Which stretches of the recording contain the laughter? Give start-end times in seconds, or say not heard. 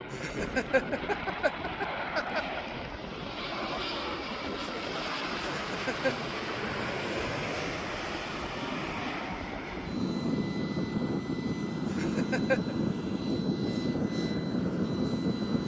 0.1-2.6, 5.4-6.3, 11.9-12.8.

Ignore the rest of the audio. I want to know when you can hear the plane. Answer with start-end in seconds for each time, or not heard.
0.0-15.6.